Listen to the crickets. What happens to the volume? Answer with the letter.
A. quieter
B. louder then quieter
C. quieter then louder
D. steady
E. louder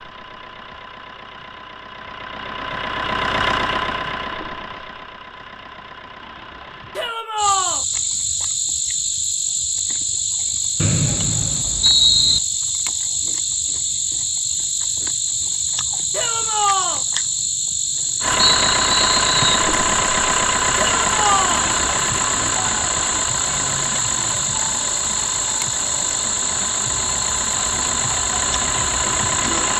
D.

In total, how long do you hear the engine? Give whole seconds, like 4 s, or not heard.
19 s.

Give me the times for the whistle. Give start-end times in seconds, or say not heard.
10.8-12.4, 18.5-19.7.